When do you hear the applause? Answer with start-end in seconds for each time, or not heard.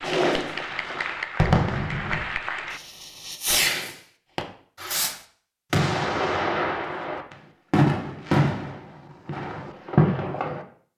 0.0-2.8.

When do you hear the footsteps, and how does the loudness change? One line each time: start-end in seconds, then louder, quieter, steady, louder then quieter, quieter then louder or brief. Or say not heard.
not heard.